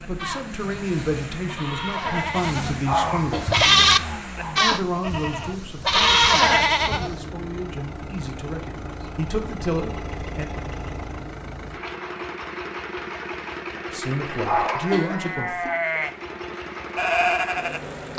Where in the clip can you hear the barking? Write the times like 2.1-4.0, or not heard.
2.8-4.5, 14.4-15.7.